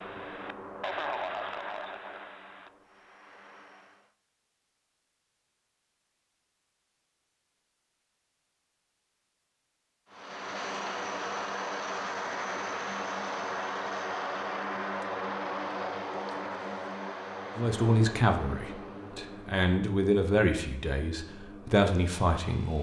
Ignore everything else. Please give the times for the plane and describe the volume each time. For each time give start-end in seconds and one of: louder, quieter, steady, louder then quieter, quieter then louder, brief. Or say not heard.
0.0-4.2 quieter
10.1-22.7 quieter.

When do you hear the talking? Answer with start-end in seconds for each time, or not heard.
17.6-22.7.